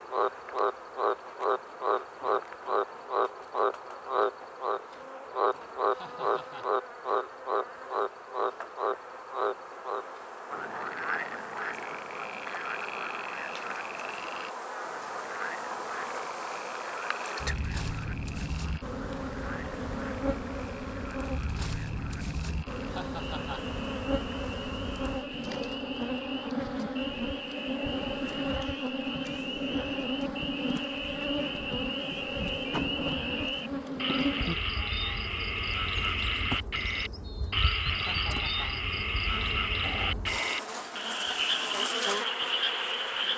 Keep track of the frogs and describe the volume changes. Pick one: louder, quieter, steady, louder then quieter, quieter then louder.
quieter then louder.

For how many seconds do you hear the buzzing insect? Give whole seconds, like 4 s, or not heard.
43 s.